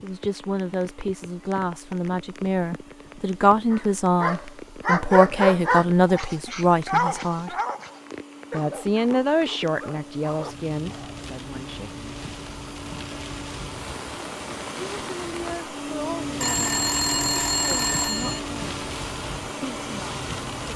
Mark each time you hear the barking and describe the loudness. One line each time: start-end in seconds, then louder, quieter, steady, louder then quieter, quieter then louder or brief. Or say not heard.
3.7-11.2 quieter.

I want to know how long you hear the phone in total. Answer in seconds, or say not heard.
2 s.